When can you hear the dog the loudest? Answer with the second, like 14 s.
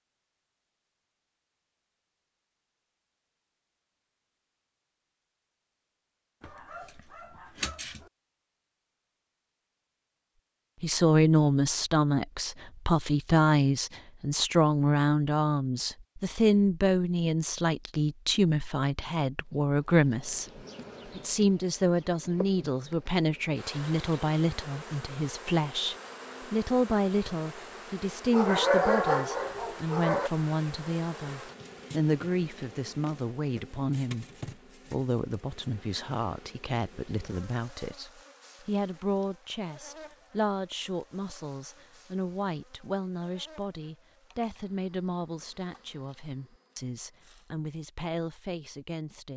29 s.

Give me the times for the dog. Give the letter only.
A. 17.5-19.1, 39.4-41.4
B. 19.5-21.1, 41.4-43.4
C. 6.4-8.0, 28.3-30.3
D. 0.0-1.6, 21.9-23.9
C.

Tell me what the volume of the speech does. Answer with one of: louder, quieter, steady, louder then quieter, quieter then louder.
quieter.